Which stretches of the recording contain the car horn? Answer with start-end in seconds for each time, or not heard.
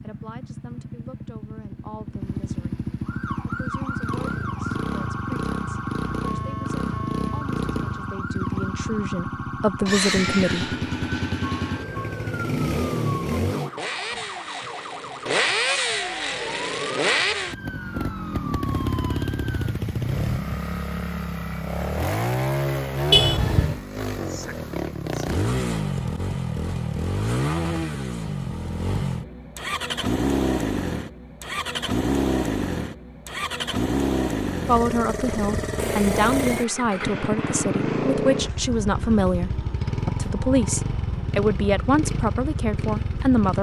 23.1-23.8.